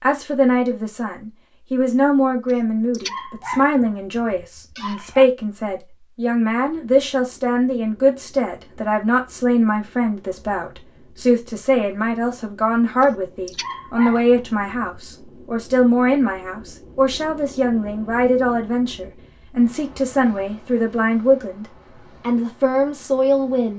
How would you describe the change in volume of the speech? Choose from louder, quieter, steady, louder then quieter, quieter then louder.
steady.